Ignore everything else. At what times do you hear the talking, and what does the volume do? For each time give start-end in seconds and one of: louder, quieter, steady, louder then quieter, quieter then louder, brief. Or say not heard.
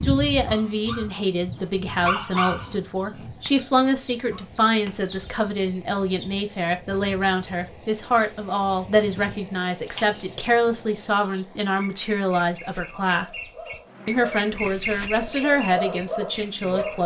0.0-13.2 steady
14.1-17.0 brief.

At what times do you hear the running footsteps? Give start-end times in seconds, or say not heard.
not heard.